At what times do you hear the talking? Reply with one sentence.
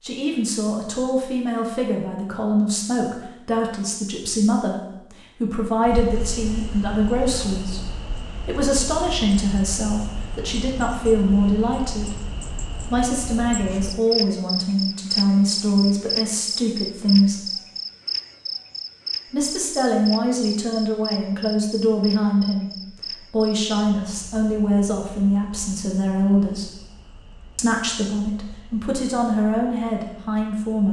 You can hear the talking from 0.0 to 12.2 s, from 12.9 to 17.5 s, from 19.3 to 26.8 s and from 27.6 to 30.8 s.